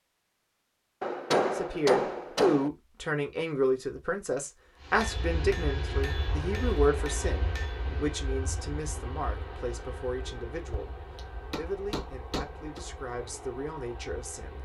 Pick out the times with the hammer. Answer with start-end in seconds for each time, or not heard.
1.0-2.7, 5.0-7.8, 10.7-12.8.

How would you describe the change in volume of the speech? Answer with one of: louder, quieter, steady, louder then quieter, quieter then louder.
quieter.